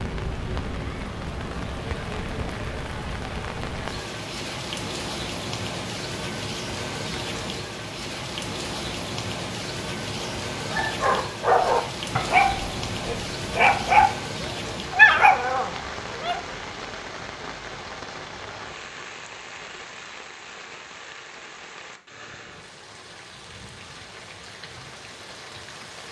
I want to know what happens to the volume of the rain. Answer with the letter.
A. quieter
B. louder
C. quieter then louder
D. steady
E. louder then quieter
A.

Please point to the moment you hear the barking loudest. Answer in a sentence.
The volume of the barking peaks at 15 seconds.